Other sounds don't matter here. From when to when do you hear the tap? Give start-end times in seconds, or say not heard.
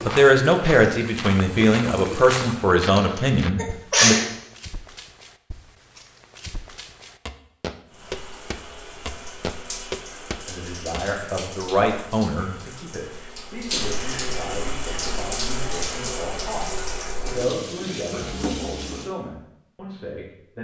0.0-2.7, 7.8-19.1.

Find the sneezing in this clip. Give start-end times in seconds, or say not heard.
3.0-4.2.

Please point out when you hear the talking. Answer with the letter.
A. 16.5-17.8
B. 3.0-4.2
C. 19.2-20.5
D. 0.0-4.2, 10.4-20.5
D.